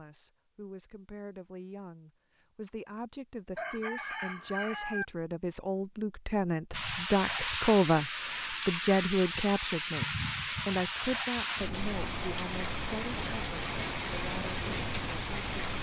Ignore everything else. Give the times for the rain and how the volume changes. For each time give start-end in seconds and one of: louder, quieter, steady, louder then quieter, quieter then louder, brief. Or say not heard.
6.7-15.7 steady.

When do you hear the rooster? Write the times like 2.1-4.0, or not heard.
3.5-5.0.